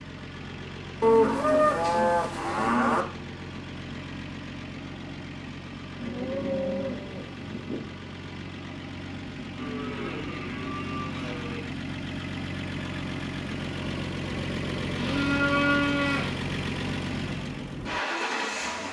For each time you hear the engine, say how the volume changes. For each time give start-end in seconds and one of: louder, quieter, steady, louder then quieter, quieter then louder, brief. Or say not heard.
0.0-18.8 louder.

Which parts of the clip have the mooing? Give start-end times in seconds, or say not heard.
1.0-3.0, 6.0-7.8, 9.6-11.7, 14.9-16.4.